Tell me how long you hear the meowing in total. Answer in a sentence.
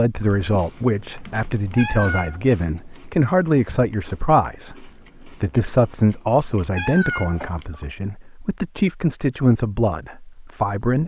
You can hear the meowing for 2 seconds altogether.